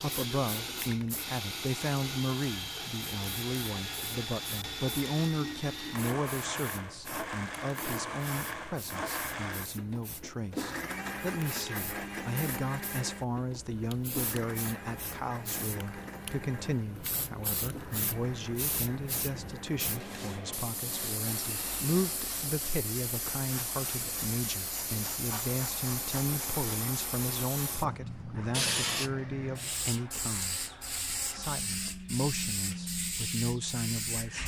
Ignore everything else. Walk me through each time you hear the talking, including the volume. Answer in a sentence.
You can hear the talking from 0.0 to 34.4 s, at a steady volume.